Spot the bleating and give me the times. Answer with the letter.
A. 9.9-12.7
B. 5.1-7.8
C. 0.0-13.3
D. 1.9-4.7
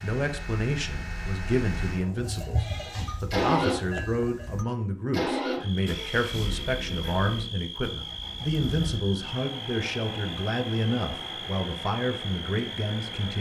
D.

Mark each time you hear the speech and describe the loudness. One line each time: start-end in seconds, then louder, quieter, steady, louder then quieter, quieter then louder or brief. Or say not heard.
0.0-13.3 steady.